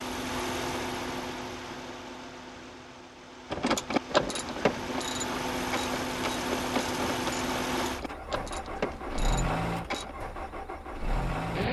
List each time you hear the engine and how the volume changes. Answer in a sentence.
The engine can be heard from 0.0 to 11.6 s, getting quieter then louder.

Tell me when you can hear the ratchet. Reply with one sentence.
You can hear the ratchet from 3.5 to 10.2 s.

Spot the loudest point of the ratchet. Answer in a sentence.
The loudest moment of the ratchet is at 4 seconds.